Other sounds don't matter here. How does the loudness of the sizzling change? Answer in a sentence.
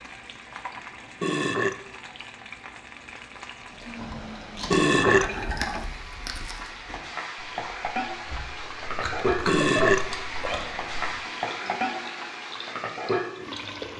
The loudness of the sizzling goes up.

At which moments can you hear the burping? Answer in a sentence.
You can hear the burping from 1.2 to 1.8 s, from 4.7 to 5.3 s and from 9.4 to 10.9 s.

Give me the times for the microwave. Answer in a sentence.
You can't hear the microwave here.